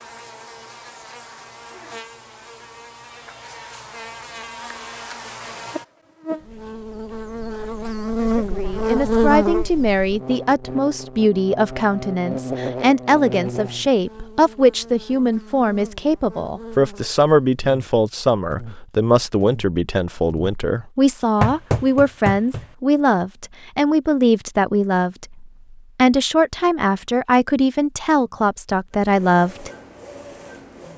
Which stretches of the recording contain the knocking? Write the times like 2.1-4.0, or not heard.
21.4-22.6.